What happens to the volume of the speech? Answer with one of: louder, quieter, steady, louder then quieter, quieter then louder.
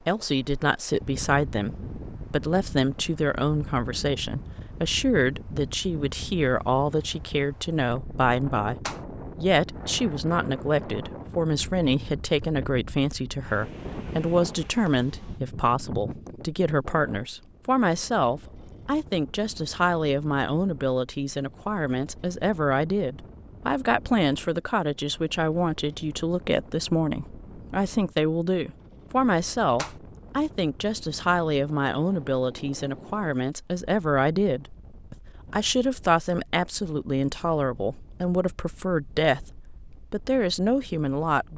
steady.